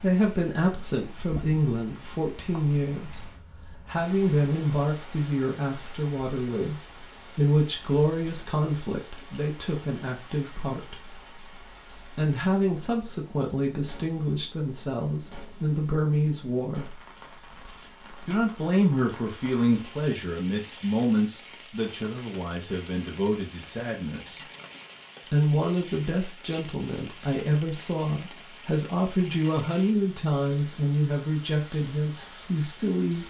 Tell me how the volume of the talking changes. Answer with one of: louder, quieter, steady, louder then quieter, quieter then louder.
steady.